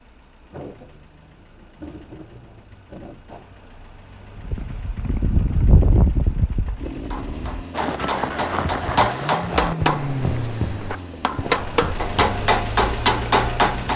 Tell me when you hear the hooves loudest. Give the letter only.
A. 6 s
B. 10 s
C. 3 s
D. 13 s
A.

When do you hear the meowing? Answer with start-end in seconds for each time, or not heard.
not heard.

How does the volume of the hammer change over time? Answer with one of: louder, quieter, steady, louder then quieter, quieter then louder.
louder.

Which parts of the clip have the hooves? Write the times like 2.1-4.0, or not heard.
4.5-12.4.